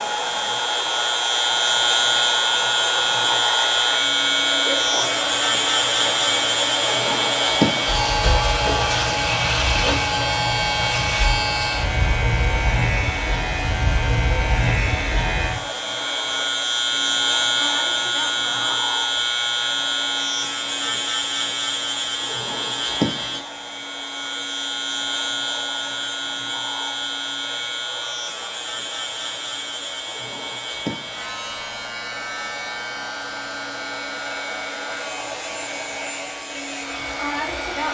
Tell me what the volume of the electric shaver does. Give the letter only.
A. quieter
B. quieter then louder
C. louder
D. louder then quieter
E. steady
A.